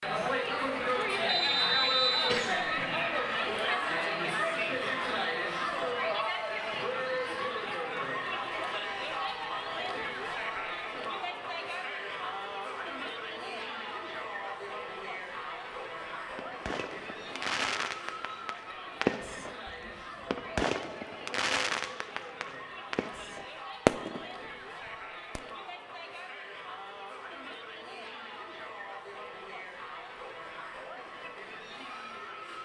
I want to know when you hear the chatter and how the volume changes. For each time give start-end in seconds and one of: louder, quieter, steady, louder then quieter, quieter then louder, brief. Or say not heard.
0.0-32.6 quieter.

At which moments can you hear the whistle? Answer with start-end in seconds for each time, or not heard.
1.2-2.4.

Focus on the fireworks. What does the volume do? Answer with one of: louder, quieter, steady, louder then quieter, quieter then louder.
louder.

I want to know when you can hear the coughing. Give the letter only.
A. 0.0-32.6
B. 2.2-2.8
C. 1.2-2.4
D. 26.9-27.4
B.